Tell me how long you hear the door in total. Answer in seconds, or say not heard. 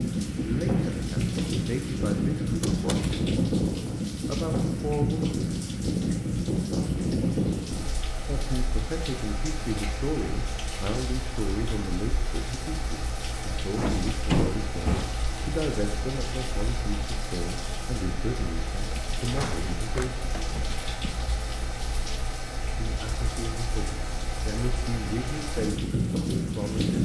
4 s.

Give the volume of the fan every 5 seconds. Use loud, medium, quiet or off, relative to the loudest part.
loud, loud, medium, medium, medium, loud.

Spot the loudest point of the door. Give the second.
14 s.